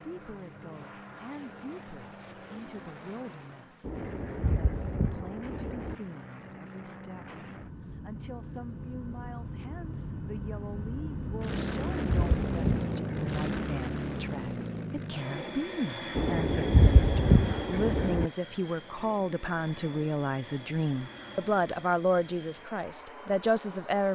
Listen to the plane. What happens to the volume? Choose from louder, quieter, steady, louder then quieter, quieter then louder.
louder then quieter.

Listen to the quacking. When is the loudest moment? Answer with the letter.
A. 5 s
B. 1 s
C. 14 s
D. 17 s
D.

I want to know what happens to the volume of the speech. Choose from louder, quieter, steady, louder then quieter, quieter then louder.
louder.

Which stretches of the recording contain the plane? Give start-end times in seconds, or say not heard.
0.0-24.1.